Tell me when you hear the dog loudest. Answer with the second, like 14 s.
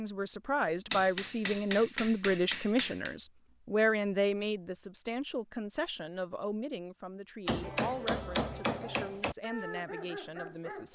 10 s.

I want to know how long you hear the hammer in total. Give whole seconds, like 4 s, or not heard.
4 s.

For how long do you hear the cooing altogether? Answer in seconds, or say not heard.
not heard.